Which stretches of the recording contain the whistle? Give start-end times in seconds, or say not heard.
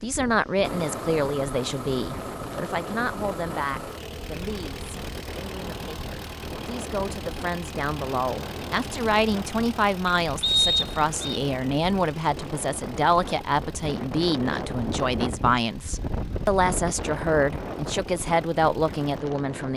10.4-11.4.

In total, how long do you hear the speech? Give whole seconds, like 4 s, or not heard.
20 s.